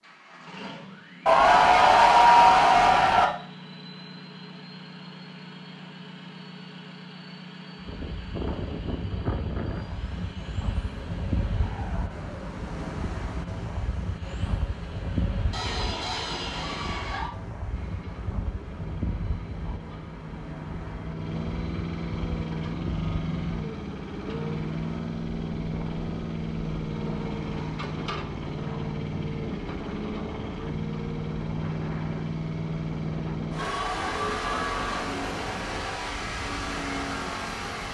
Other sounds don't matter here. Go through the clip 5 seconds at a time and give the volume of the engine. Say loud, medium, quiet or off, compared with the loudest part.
medium, medium, medium, medium, loud, loud, loud, loud.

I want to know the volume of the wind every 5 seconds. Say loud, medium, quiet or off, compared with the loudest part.
off, loud, loud, loud, medium, medium, medium, medium.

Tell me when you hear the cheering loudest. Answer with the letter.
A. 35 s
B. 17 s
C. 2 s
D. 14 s
C.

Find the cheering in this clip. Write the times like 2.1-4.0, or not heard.
1.2-3.2, 15.5-17.3, 33.5-35.1.